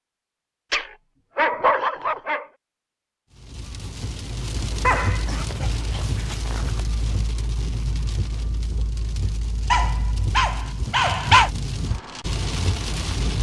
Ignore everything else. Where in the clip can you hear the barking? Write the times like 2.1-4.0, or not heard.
0.7-2.5, 4.8-6.8, 9.7-11.5.